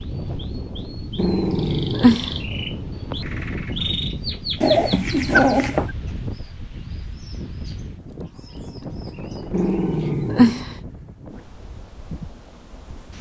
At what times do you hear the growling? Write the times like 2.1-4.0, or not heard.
1.1-2.3, 4.6-5.9, 9.5-10.7.